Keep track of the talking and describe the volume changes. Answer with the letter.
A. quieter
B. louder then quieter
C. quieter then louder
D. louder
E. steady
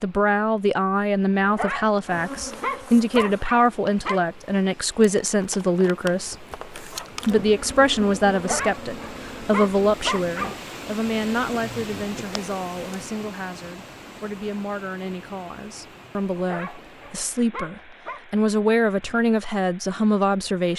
C.